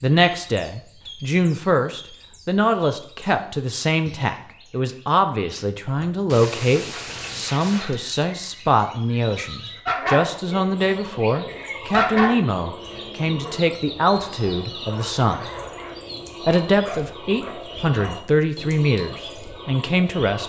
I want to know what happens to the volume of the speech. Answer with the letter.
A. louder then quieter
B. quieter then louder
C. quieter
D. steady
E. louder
D.